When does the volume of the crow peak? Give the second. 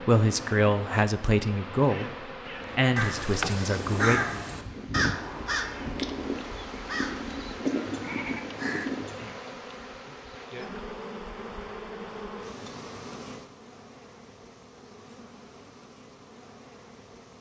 4 s.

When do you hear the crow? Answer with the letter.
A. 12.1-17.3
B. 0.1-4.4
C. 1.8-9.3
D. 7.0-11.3
C.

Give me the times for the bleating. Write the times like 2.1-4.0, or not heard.
3.8-9.1.